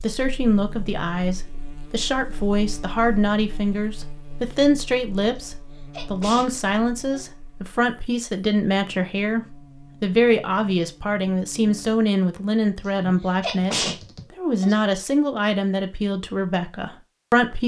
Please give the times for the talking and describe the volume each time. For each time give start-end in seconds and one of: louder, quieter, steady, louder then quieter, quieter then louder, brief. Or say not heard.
0.0-17.6 steady.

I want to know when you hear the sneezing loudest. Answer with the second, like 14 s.
14 s.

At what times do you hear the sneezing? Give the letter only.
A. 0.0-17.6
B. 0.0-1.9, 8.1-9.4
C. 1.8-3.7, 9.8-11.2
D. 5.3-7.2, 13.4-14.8
D.